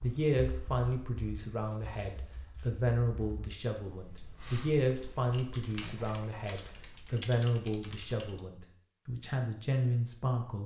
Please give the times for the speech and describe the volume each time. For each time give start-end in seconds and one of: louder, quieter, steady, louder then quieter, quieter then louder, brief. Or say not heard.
0.0-10.6 steady.